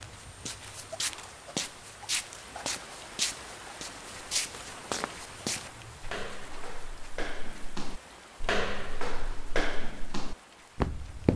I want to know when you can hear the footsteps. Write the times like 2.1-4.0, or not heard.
0.0-11.3.